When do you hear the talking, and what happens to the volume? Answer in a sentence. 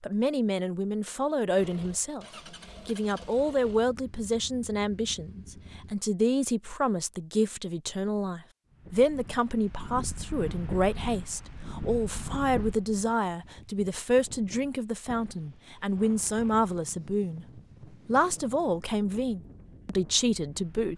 You can hear the talking briefly from 0.0 to 2.2 s; from 2.9 to 17.4 s, at a steady volume; and briefly from 18.1 to 20.9 s.